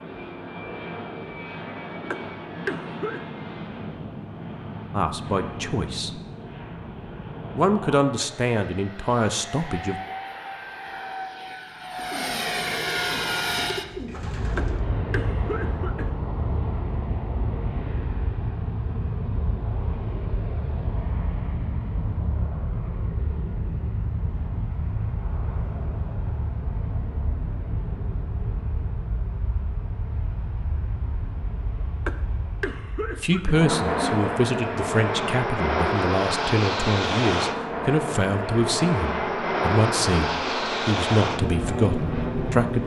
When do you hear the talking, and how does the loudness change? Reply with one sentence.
The talking can be heard briefly from 4.9 to 6.2 s; briefly from 7.5 to 10.0 s; and from 33.0 to 42.8 s, at a steady volume.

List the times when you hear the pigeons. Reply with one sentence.
You can hear the pigeons from 11.9 to 14.8 s.